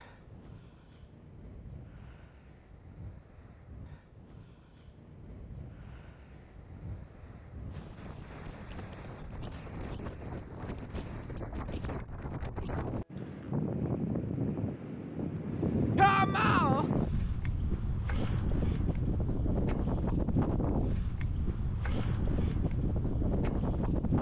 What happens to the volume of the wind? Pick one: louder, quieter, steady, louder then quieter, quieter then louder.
louder.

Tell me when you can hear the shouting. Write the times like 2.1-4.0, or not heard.
15.9-16.9.